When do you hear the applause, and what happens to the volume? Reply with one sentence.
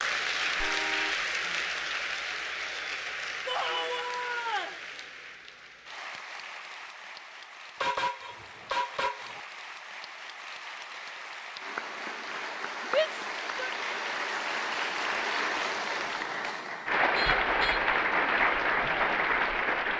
You can hear the applause from 0.0 to 19.9 s, getting quieter then louder.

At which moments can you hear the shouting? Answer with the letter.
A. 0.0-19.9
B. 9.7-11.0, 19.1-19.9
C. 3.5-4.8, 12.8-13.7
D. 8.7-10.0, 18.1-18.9
C.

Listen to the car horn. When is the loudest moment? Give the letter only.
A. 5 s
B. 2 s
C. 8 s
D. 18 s
C.